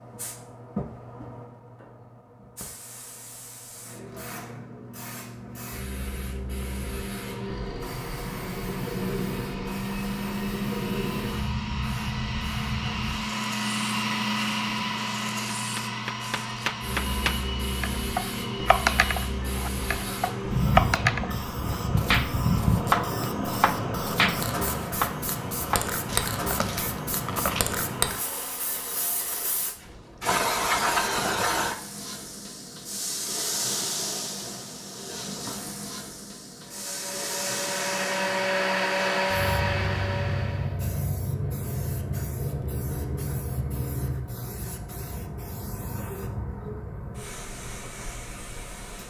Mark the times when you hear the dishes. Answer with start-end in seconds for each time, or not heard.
not heard.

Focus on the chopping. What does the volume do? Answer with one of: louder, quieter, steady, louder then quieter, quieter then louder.
louder then quieter.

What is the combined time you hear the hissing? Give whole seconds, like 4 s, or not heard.
49 s.